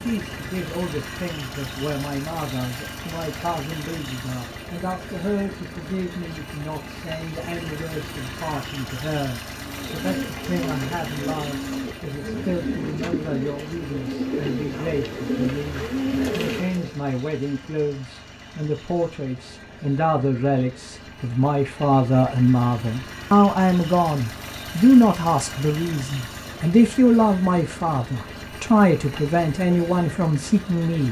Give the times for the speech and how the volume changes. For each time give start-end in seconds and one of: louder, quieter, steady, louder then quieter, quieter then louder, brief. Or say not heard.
0.0-31.0 louder.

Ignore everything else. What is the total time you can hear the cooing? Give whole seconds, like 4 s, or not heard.
7 s.